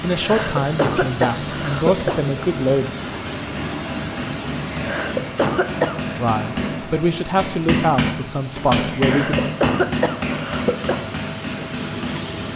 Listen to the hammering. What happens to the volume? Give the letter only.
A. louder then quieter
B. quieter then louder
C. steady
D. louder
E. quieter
A.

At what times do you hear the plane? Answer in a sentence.
You can hear the plane from 0.0 to 12.5 s.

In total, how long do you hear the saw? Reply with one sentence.
The saw can't be heard in this clip.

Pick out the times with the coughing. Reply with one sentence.
You can hear the coughing from 0.1 to 2.2 s, from 4.7 to 6.0 s and from 8.9 to 11.1 s.